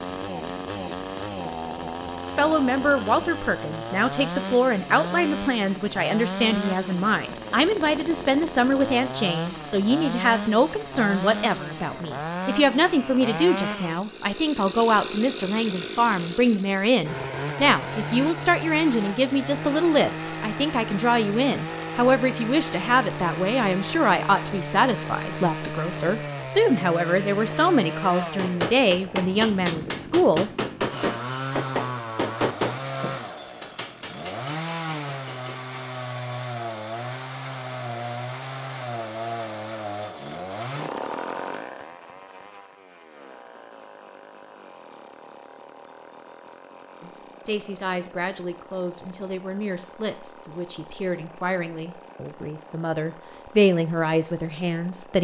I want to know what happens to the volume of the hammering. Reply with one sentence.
The volume of the hammering goes down.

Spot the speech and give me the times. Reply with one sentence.
You can hear the speech from 2.4 to 30.5 s and from 47.0 to 55.1 s.